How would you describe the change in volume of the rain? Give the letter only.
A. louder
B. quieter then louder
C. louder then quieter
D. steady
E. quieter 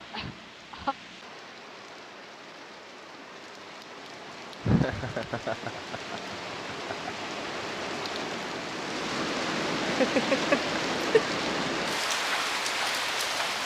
A.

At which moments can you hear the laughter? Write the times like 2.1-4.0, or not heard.
0.1-0.9, 4.7-7.0, 9.8-11.3.